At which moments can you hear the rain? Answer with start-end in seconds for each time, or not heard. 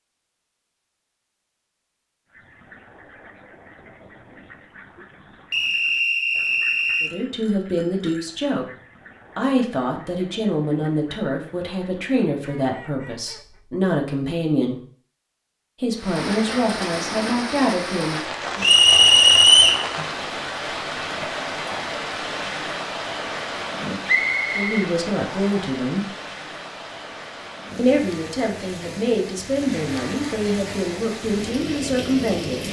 15.9-32.6.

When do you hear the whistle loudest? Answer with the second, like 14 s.
19 s.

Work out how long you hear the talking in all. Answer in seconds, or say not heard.
16 s.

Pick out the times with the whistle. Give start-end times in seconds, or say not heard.
5.5-7.1, 18.6-19.9, 24.1-25.6.